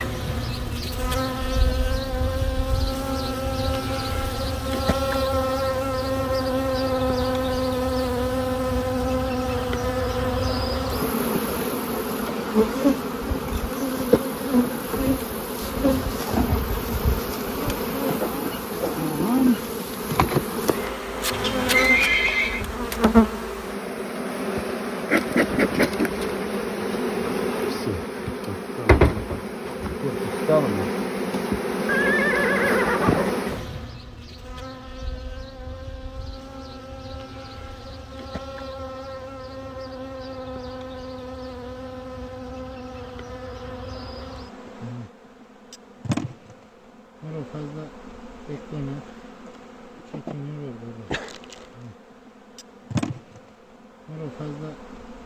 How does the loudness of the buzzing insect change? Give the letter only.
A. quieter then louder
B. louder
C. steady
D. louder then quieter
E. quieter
E.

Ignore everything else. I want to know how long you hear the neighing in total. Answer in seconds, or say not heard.
3 s.